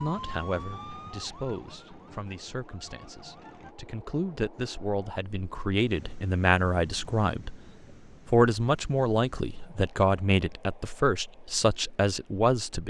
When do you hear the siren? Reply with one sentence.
The siren can be heard from 0.0 to 3.8 s.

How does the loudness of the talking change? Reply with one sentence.
The loudness of the talking goes up.